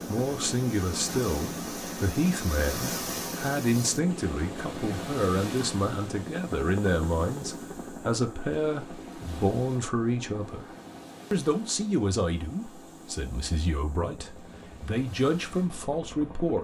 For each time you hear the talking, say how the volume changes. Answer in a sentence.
The talking can be heard from 0.1 to 10.7 s, at a steady volume; and from 11.3 to 16.5 s, getting quieter then louder.